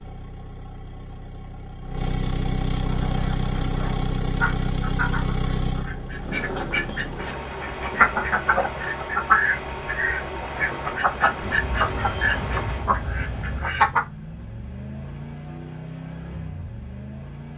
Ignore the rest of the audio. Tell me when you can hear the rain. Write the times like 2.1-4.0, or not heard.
not heard.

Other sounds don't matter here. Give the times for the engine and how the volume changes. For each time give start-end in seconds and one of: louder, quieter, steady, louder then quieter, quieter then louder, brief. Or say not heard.
0.0-17.5 quieter.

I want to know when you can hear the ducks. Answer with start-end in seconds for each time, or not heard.
2.8-14.1.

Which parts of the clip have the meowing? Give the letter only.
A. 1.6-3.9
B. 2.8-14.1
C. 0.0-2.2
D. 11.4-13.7
D.